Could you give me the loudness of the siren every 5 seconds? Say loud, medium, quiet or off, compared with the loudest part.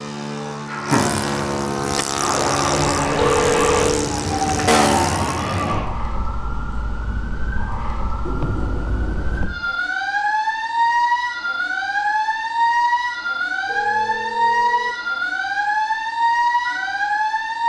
loud, medium, loud, loud.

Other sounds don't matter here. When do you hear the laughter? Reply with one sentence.
You can hear the laughter from 0.7 to 1.4 s.